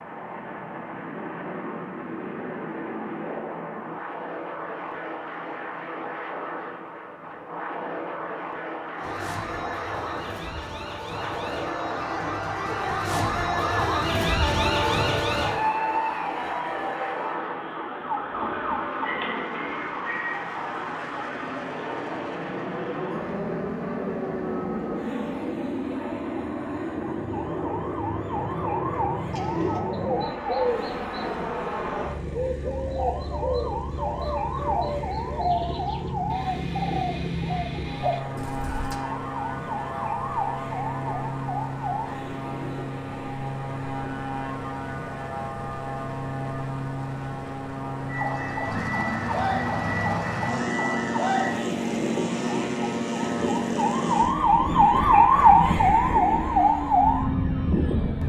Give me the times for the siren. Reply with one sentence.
The siren can be heard from 8.9 to 44.0 s and from 48.0 to 58.2 s.